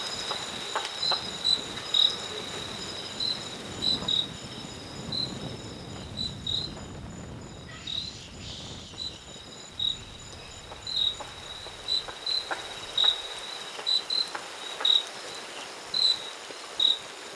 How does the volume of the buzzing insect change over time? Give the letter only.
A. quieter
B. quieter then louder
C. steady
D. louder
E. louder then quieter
B.